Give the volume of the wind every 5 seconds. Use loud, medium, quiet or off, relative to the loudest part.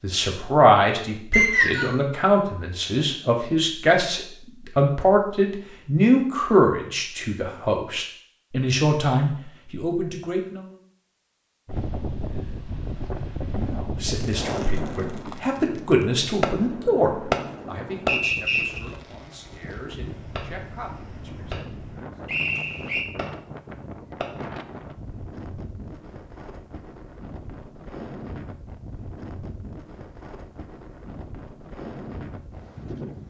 off, off, loud, medium, medium, medium, medium.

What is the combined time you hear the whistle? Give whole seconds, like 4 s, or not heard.
2 s.